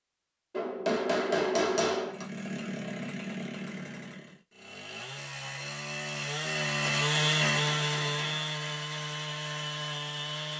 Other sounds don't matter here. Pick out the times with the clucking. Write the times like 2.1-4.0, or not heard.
not heard.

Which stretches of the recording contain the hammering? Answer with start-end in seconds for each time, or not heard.
0.5-2.2, 7.0-8.6.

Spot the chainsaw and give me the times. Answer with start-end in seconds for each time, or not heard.
2.0-10.5.